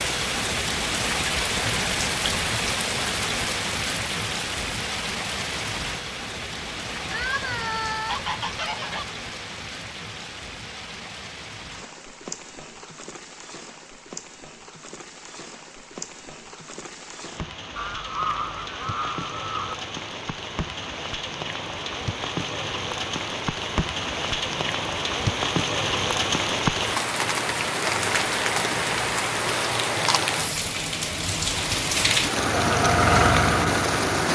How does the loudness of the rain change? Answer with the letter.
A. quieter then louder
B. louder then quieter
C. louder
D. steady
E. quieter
A.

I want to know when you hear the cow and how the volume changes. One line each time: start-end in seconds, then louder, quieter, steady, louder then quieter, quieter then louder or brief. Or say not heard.
not heard.